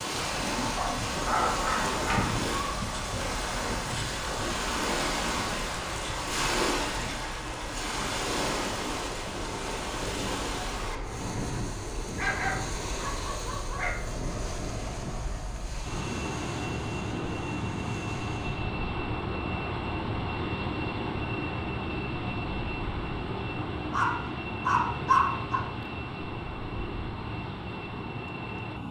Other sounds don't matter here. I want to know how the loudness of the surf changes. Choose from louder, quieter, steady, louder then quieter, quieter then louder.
quieter.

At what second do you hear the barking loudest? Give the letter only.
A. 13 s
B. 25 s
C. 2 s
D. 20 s
B.